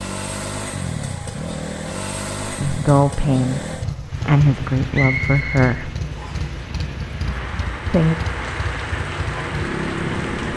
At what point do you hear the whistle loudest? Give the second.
5 s.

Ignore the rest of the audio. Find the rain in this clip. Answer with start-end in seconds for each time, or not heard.
4.0-10.5.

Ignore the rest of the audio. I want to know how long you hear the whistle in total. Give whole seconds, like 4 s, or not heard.
2 s.